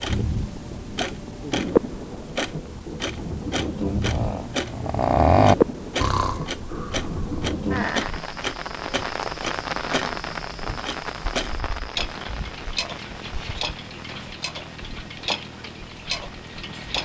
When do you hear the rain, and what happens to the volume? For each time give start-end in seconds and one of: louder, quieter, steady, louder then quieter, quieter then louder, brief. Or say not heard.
0.0-16.9 quieter.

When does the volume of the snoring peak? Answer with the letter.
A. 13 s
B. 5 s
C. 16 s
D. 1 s
B.